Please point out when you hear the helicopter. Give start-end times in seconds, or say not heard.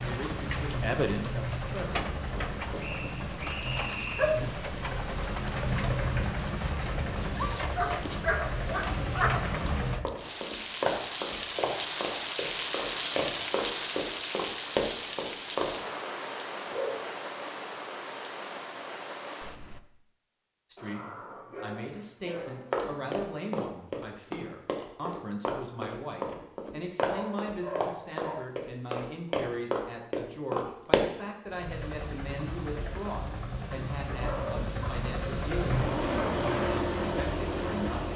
0.0-10.1, 31.4-38.1.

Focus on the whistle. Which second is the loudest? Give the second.
4 s.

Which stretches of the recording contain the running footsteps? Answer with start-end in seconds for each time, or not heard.
10.1-15.8, 22.4-31.1.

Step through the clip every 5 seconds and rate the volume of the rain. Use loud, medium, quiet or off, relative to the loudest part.
medium, medium, loud, medium, off, off, off, off.